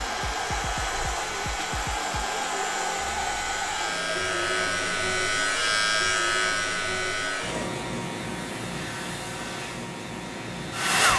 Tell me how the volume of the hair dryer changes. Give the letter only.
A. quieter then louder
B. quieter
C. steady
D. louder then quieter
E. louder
B.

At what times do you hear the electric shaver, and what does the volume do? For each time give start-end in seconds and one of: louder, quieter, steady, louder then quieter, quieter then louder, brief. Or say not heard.
0.0-11.1 louder then quieter.